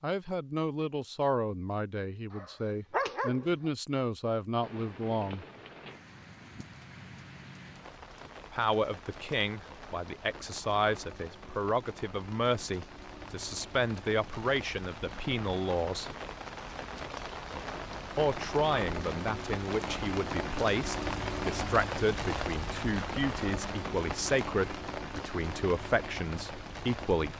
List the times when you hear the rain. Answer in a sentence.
You can hear the rain from 4.6 to 27.3 s.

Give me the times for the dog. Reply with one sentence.
The dog can be heard from 2.3 to 3.7 s.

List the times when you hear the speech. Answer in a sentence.
You can hear the speech from 0.0 to 5.5 s, from 8.5 to 16.1 s and from 18.1 to 27.3 s.